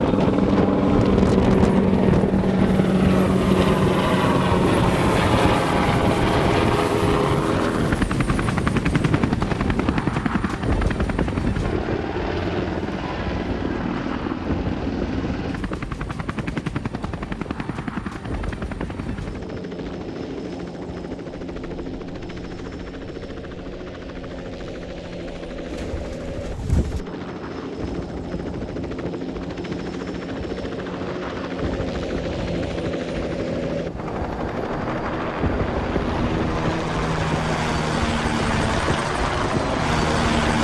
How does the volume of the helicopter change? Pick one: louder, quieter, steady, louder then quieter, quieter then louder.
quieter then louder.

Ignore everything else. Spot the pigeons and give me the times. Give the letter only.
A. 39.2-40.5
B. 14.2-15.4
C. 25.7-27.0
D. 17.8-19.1
C.